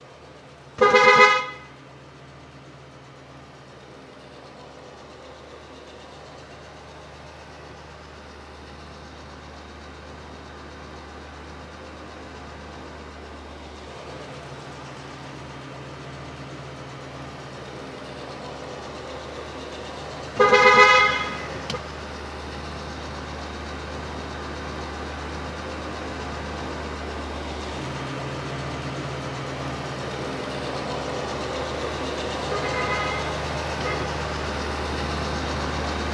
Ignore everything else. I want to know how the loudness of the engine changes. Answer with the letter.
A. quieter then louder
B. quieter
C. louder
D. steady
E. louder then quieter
C.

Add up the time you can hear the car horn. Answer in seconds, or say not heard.
4 s.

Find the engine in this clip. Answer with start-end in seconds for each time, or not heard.
0.0-36.0.